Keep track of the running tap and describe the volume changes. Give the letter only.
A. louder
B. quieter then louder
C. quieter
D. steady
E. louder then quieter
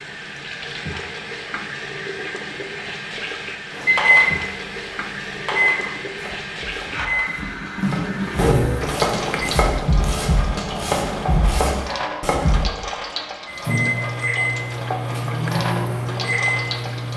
D.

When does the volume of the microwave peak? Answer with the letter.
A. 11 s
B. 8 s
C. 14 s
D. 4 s
D.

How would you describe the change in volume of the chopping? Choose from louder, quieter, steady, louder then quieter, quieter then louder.
louder.